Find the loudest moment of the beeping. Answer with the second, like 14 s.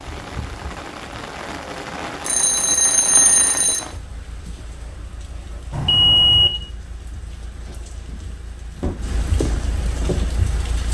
6 s.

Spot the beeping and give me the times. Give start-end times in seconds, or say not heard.
2.2-3.8, 5.7-6.5.